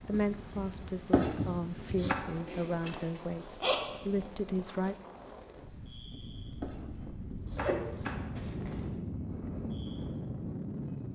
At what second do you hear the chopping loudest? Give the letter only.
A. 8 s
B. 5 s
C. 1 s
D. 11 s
C.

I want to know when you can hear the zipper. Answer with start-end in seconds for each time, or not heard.
2.5-3.9, 7.5-8.8.